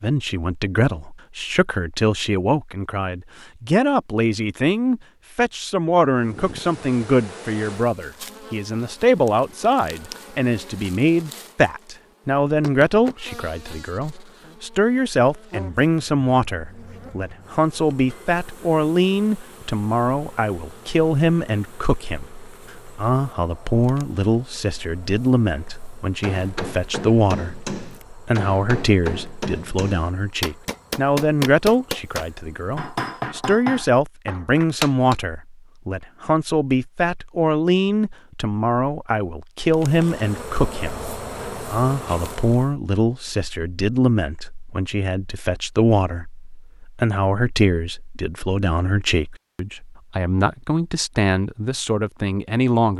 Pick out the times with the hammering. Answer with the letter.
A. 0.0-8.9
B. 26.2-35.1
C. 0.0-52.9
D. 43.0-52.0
B.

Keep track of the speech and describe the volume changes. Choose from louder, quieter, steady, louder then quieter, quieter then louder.
steady.